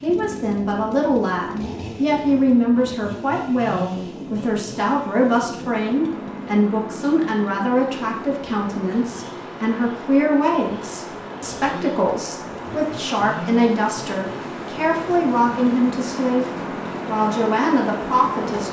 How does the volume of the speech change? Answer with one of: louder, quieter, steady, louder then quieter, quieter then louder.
steady.